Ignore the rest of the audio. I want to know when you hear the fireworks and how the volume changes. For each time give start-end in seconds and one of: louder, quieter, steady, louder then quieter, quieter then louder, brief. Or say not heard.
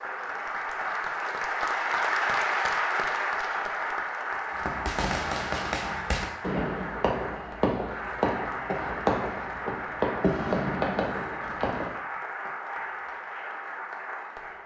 4.5-12.0 steady.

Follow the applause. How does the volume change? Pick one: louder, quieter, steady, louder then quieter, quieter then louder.
quieter.